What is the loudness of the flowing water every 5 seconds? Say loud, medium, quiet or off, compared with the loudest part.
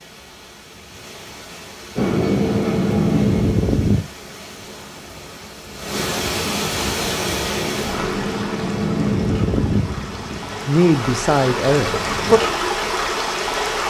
quiet, loud, loud.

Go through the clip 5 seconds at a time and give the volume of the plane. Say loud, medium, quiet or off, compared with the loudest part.
loud, medium, quiet.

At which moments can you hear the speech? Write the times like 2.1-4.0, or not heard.
10.7-12.4.